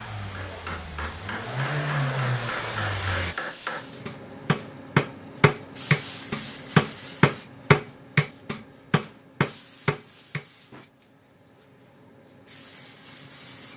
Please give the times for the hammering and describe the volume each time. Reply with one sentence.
You can hear the hammering from 0.3 to 10.8 s, getting louder then quieter.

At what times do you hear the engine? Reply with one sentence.
The engine can be heard from 0.0 to 3.4 s.